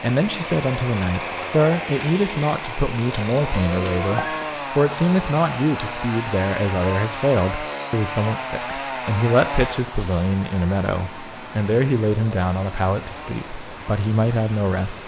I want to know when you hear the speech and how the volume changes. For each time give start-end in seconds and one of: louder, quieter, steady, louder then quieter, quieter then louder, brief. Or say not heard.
0.0-15.0 steady.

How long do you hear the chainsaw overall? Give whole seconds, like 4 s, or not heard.
15 s.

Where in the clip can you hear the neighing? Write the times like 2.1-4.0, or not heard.
3.8-4.5.